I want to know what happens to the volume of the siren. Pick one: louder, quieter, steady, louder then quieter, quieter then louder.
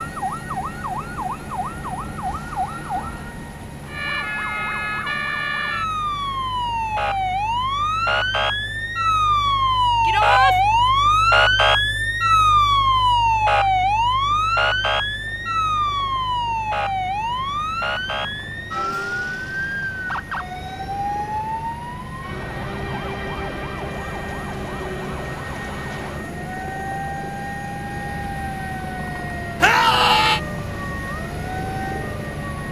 louder then quieter.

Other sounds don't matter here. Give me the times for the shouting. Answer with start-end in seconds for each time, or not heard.
10.0-10.6, 29.6-30.4.